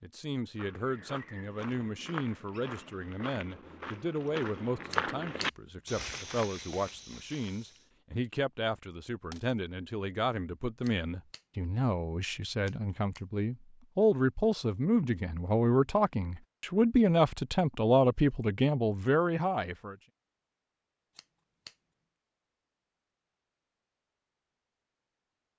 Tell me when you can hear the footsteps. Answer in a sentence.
The footsteps can be heard from 0.6 to 7.8 s.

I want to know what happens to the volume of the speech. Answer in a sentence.
The loudness of the speech goes up.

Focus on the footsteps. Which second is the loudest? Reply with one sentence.
The volume of the footsteps peaks at 5 seconds.